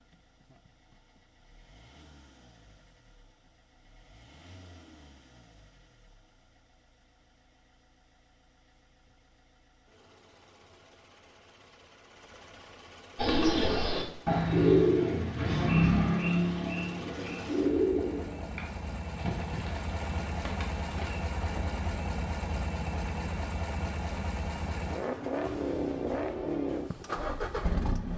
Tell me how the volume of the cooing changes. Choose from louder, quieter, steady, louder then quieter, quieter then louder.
quieter.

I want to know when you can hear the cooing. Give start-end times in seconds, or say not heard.
13.2-21.8.